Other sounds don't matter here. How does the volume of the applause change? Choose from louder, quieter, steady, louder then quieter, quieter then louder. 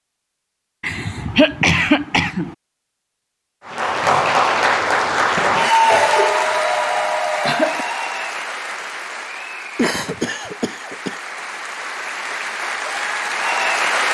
quieter then louder.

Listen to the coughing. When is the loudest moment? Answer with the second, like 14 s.
2 s.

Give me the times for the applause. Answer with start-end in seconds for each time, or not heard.
3.6-14.1.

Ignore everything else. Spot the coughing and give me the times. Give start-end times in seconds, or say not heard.
0.8-2.5, 5.8-7.8, 9.8-11.3.